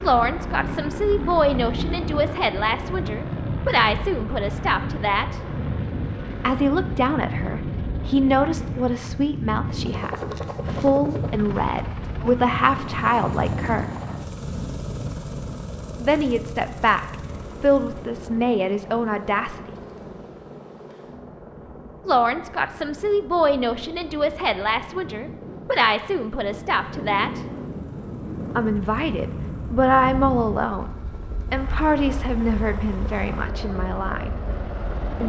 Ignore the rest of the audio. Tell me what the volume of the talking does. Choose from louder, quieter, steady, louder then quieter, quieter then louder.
steady.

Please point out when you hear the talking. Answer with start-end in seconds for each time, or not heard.
0.0-5.4, 6.4-13.8, 15.9-19.6, 22.1-27.4, 28.6-34.4.